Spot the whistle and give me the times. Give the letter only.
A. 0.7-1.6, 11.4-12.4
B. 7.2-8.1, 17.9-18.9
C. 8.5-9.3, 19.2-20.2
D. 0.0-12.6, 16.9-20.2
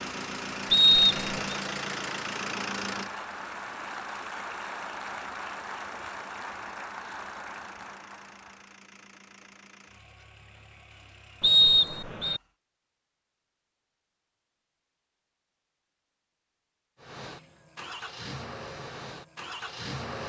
A.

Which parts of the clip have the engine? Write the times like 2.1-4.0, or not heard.
0.0-12.6, 16.9-20.2.